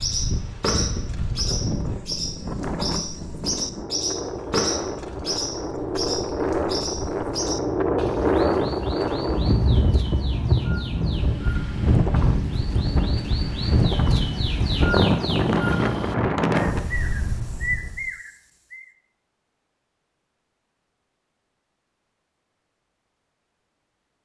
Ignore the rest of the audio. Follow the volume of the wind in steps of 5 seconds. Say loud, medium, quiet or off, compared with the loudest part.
medium, loud, loud, loud, off.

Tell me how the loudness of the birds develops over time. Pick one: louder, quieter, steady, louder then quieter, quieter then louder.
quieter then louder.